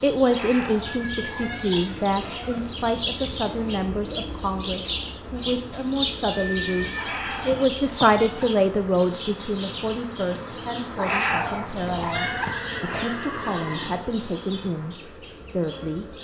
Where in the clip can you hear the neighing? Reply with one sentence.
The neighing can be heard from 0.8 to 2.1 s, from 6.3 to 8.1 s and from 12.2 to 14.1 s.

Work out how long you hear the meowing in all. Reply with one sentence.
You can hear the meowing for 6 seconds altogether.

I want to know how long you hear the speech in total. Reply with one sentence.
You can hear the speech for 16 seconds altogether.